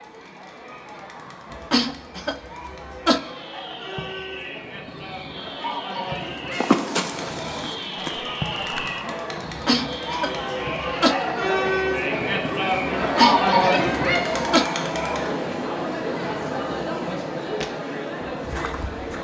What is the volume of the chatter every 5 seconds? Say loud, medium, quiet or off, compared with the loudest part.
quiet, medium, loud, medium.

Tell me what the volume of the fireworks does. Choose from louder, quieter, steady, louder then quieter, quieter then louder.
louder then quieter.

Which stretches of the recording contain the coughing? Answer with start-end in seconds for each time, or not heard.
1.5-3.2, 9.4-11.2, 13.0-14.7.